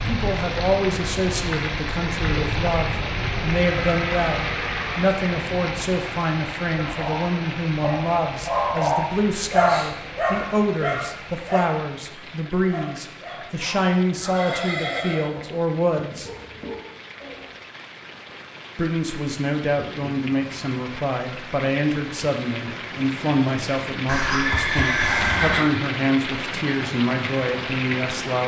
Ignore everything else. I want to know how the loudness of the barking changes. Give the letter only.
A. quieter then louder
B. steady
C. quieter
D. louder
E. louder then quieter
C.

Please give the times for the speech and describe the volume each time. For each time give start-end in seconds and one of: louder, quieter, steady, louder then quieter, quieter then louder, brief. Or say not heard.
0.1-16.3 steady
18.8-28.4 steady.